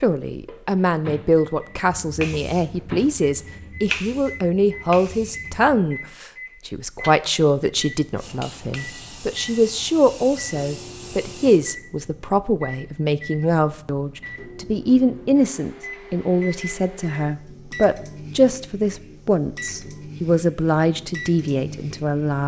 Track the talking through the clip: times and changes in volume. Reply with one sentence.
You can hear the talking from 0.0 to 22.4 s, at a steady volume.